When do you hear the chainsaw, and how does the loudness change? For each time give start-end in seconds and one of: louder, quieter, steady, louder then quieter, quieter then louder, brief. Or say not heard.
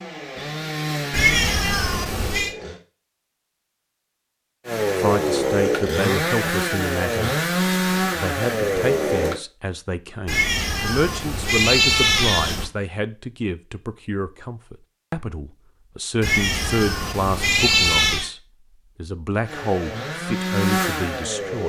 0.0-2.8 brief
4.7-9.4 steady
19.4-21.6 brief.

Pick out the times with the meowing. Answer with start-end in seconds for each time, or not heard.
1.1-2.5, 10.2-12.7, 16.2-18.3.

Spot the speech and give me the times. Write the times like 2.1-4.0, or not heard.
5.0-7.3, 8.2-21.6.